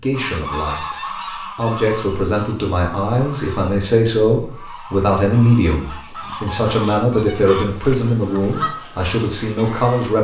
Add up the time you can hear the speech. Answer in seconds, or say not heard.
10 s.